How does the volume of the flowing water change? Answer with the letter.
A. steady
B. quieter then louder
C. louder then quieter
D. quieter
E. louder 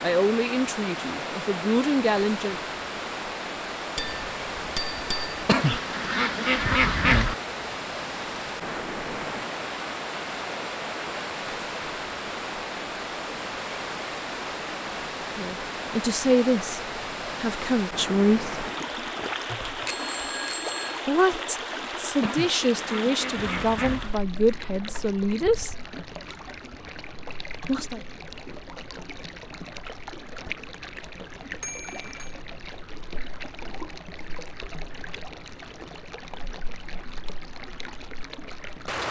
D.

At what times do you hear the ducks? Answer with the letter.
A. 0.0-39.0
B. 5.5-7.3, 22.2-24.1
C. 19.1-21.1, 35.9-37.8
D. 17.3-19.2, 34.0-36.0
B.